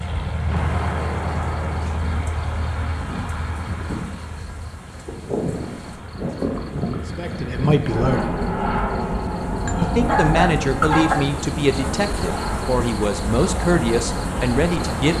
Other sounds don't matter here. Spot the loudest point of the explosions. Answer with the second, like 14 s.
1 s.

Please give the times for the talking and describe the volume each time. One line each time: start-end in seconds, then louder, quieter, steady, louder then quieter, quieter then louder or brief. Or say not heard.
7.2-8.3 brief
9.8-15.1 steady.